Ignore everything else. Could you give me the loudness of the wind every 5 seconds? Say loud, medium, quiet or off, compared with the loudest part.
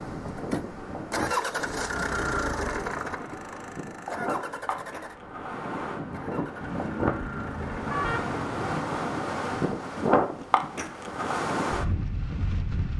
medium, loud, loud.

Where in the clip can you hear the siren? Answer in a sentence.
You can't hear the siren here.